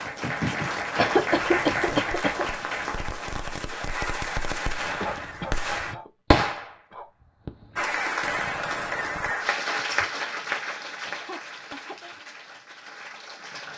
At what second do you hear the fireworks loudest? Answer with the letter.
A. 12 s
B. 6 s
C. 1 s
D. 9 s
B.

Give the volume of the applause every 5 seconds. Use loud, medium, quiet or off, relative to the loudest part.
loud, loud, medium.